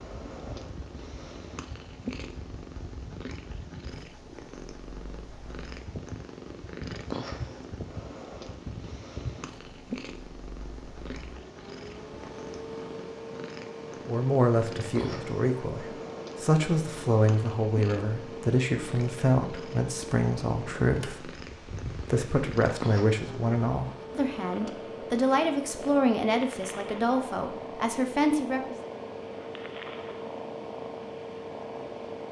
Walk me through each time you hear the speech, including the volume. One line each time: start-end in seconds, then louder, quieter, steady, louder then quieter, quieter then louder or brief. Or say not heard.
14.1-28.8 steady.